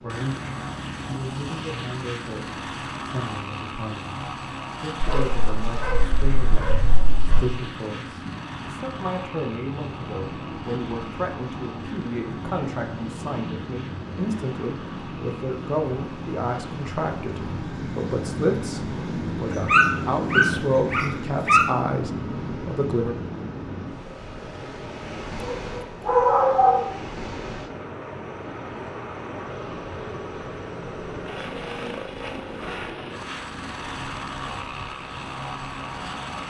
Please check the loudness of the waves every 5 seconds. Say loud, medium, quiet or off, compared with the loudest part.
medium, medium, loud, loud, loud, medium, medium, medium.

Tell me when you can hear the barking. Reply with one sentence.
You can hear the barking from 5.0 to 7.5 s, from 19.4 to 21.7 s and from 25.4 to 26.9 s.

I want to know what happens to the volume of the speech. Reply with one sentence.
The loudness of the speech goes up.